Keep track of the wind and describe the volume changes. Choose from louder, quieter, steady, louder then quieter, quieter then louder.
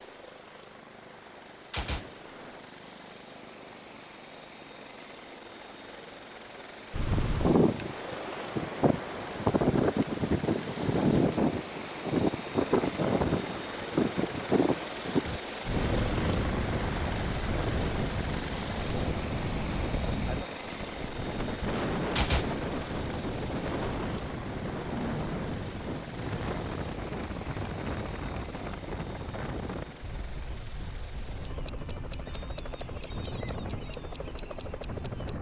quieter.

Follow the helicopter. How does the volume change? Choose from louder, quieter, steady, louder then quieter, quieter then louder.
louder then quieter.